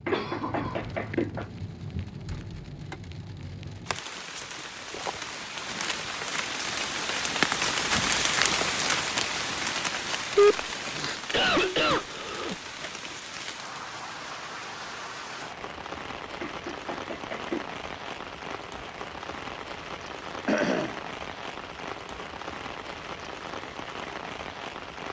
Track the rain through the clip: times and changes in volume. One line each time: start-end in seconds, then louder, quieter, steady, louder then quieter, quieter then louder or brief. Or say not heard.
0.0-25.0 louder then quieter.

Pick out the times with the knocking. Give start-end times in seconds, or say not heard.
0.1-1.5, 16.4-17.6.